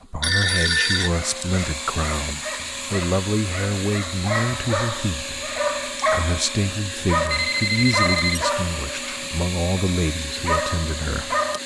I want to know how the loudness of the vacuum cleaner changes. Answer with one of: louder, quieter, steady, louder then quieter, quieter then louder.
steady.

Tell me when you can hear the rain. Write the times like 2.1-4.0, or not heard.
not heard.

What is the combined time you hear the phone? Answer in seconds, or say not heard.
2 s.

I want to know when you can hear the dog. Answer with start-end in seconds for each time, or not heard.
1.1-11.6.